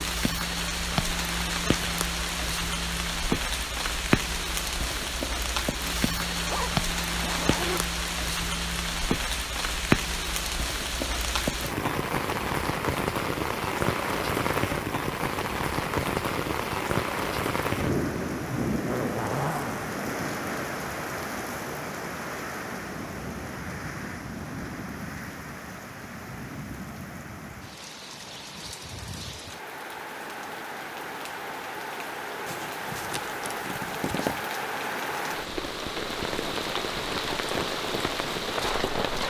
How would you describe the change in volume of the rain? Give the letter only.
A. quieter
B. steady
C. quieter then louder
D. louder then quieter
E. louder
C.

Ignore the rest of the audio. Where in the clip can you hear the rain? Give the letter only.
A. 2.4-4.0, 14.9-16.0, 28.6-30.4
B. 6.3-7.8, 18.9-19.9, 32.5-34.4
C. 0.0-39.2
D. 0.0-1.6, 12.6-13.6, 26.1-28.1
C.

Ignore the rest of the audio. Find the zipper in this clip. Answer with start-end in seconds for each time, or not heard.
6.3-7.8, 18.9-19.9, 32.5-34.4.